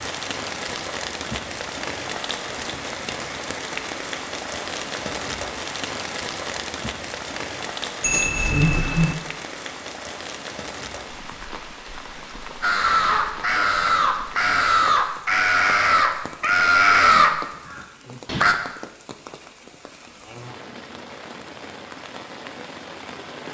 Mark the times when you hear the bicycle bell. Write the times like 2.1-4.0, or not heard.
8.0-9.2.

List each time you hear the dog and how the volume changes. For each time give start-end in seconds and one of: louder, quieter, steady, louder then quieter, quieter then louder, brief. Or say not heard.
not heard.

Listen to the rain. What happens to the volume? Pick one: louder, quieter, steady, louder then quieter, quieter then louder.
quieter.